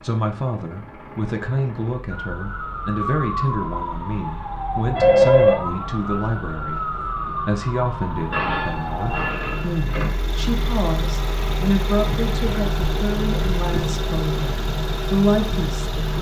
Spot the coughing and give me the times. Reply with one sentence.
You can't hear the coughing here.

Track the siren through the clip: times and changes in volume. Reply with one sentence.
The siren can be heard from 2.1 to 9.3 s, at a steady volume.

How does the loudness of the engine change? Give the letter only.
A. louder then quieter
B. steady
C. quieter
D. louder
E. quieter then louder
D.